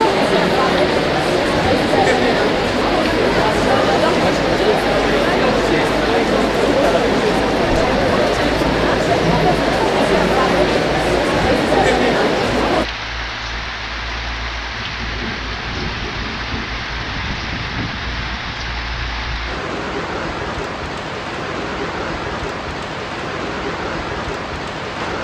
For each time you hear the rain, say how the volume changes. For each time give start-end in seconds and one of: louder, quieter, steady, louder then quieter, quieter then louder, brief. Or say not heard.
0.0-25.1 steady.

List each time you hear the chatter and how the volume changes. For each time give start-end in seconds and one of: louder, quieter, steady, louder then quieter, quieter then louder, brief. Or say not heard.
0.0-12.8 steady.